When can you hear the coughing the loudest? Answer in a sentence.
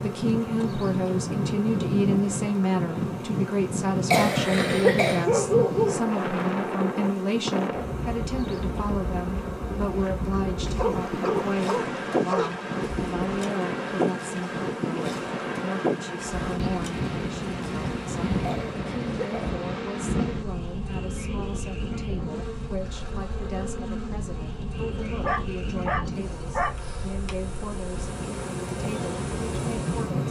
The volume of the coughing peaks at 5 seconds.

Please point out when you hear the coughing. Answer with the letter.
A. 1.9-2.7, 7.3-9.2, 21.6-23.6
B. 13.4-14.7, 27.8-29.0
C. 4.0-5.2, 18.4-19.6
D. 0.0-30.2
C.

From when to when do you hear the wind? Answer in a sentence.
You can hear the wind from 0.0 to 30.2 s.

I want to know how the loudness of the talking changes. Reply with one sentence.
The loudness of the talking goes down.